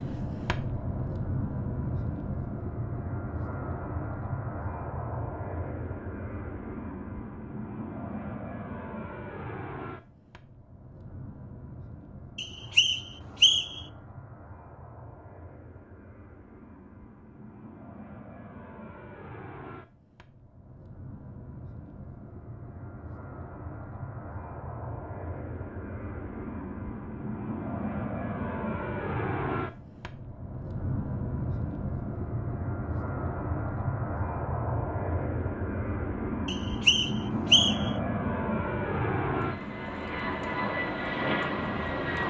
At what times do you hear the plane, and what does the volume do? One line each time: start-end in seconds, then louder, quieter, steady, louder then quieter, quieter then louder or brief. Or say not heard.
0.0-42.2 quieter then louder.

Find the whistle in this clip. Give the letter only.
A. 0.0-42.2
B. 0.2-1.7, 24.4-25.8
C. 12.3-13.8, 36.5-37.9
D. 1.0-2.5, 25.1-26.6
C.